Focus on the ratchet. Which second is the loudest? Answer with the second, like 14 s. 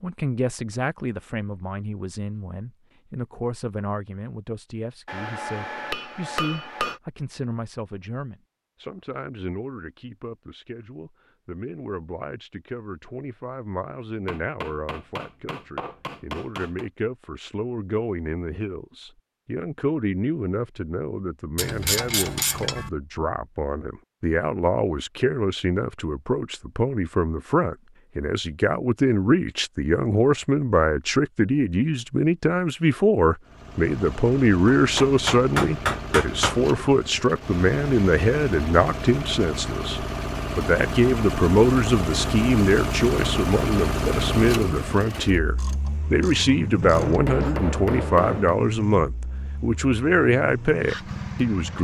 22 s.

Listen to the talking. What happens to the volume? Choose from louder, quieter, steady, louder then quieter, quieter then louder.
louder.